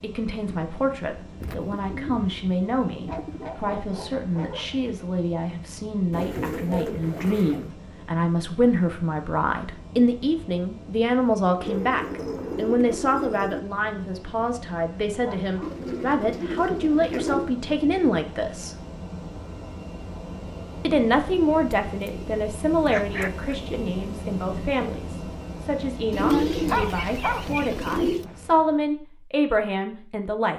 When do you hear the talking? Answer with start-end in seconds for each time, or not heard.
0.0-18.8, 20.9-30.5.